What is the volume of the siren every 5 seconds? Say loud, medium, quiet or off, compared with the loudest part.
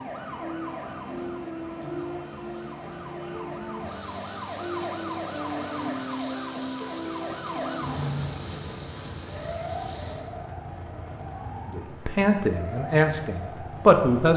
loud, loud, medium.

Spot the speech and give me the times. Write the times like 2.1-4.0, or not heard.
11.7-14.3.